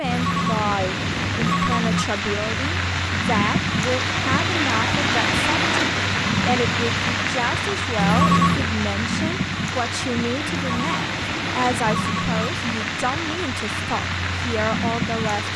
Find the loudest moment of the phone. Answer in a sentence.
The loudest moment of the phone is at 8 seconds.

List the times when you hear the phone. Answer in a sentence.
You can hear the phone from 0.0 to 2.0 s, from 8.0 to 8.7 s and from 10.4 to 12.5 s.